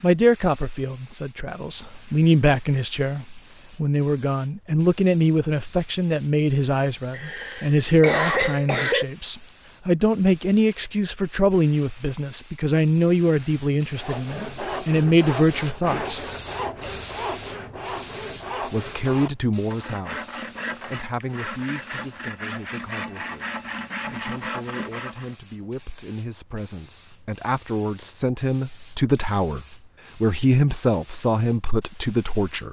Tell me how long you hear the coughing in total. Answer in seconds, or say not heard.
2 s.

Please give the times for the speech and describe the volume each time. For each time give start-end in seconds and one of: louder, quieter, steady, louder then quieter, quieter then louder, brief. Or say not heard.
0.0-16.2 steady
18.7-32.6 quieter then louder.